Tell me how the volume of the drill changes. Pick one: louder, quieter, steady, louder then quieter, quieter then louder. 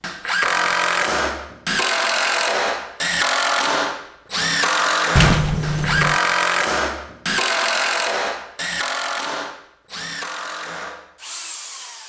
quieter.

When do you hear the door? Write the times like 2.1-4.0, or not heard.
5.2-6.2.